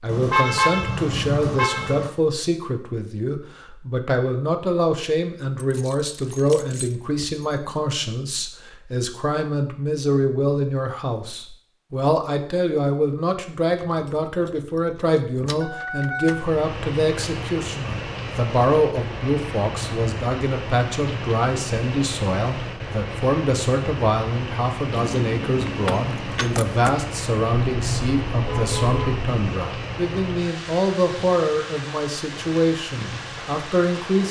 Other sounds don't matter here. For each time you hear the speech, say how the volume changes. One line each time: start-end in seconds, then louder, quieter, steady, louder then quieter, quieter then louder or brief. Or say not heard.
0.0-34.2 steady.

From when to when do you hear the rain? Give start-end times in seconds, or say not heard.
16.2-34.2.